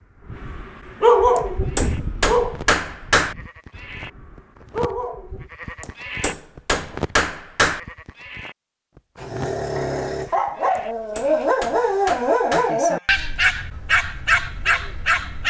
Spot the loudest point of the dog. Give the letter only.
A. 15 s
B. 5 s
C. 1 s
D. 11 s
C.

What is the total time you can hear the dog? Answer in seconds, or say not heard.
12 s.